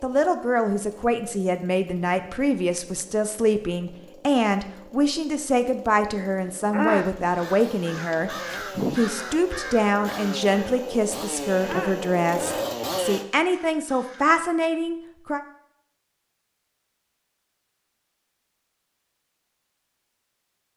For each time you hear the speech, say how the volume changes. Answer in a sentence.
The speech can be heard from 0.0 to 15.4 s, at a steady volume.